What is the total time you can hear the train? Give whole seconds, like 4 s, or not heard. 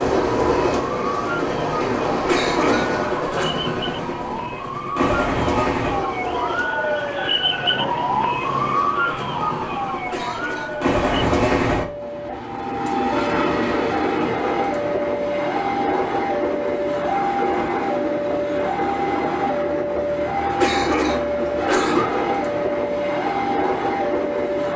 25 s.